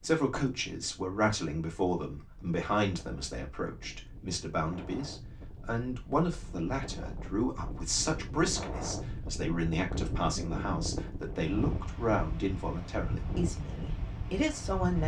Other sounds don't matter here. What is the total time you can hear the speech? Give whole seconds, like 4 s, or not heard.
15 s.